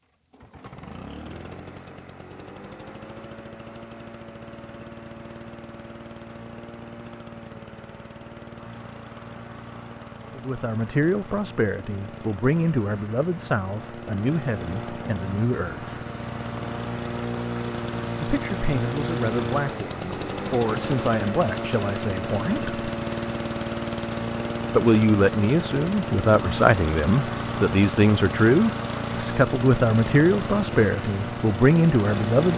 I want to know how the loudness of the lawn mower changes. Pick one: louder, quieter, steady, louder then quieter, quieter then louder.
louder.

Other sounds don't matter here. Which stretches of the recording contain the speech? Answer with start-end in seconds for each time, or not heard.
10.3-15.9, 18.2-22.9, 24.7-32.5.